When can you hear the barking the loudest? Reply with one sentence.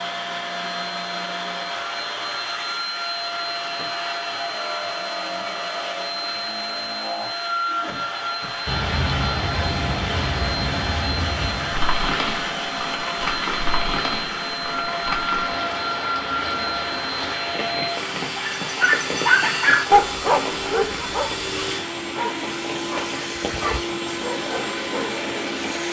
The loudest moment of the barking is at 20 seconds.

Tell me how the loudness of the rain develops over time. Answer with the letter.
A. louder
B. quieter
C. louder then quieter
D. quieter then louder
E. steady
B.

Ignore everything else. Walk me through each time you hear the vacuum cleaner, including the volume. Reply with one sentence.
You can hear the vacuum cleaner from 0.0 to 25.8 s, at a steady volume.